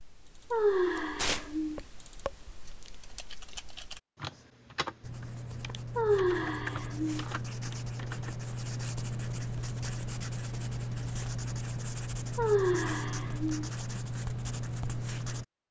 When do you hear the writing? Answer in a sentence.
You can hear the writing from 5.0 to 15.4 s.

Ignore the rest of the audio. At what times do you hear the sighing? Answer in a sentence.
The sighing can be heard from 0.5 to 1.8 s, from 6.0 to 7.2 s and from 12.3 to 13.7 s.